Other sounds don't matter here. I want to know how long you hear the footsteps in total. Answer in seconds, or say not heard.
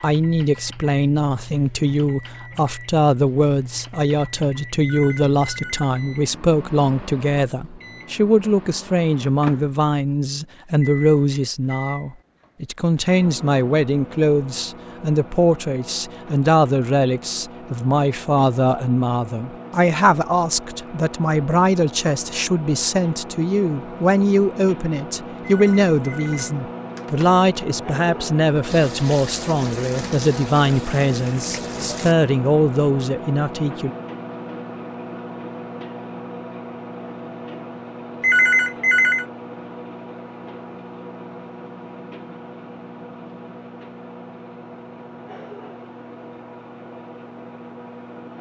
not heard.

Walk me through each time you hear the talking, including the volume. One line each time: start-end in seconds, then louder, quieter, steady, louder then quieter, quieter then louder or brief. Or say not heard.
0.0-33.9 steady.